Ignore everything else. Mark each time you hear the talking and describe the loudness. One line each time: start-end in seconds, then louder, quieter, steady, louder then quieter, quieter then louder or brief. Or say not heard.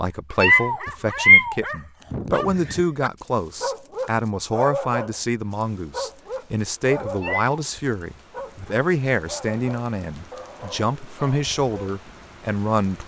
0.0-13.0 steady.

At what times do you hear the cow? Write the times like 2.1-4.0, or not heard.
not heard.